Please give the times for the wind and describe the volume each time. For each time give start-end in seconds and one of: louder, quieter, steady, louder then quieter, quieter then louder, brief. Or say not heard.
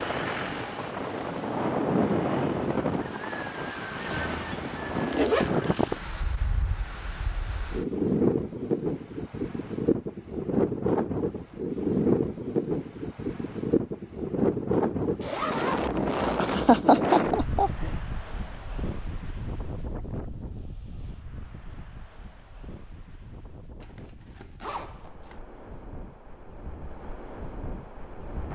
0.0-28.5 quieter.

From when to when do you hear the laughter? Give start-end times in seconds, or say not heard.
16.4-17.9.